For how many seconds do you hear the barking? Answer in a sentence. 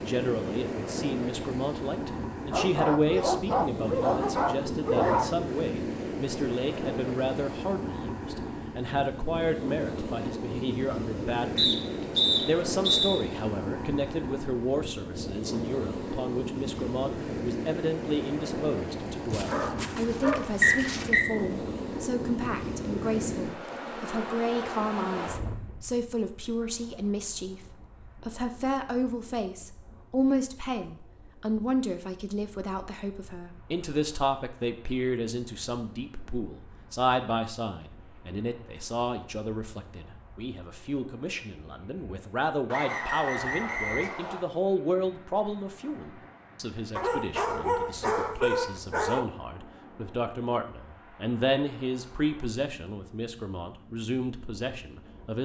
You can hear the barking for 7 seconds altogether.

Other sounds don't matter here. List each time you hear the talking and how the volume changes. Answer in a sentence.
The talking can be heard from 0.0 to 55.3 s, at a steady volume.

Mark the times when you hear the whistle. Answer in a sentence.
You can hear the whistle from 11.6 to 13.2 s, from 20.6 to 21.2 s and from 42.7 to 44.5 s.